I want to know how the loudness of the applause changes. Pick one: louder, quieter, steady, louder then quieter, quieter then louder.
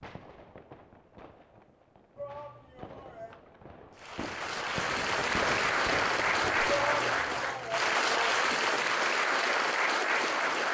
steady.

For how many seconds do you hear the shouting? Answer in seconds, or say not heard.
4 s.